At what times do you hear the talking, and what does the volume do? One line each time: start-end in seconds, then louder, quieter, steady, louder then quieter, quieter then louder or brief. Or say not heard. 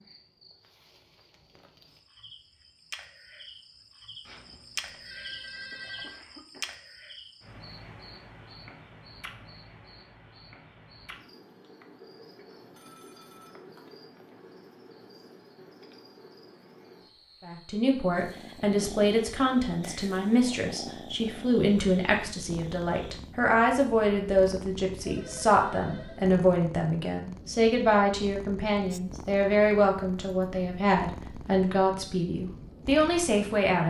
17.4-33.8 steady.